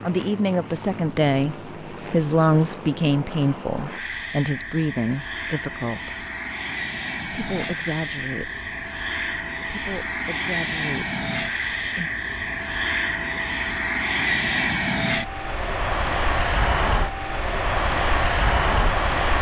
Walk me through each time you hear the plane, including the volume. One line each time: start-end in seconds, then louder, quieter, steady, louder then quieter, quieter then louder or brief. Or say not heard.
0.0-19.3 louder.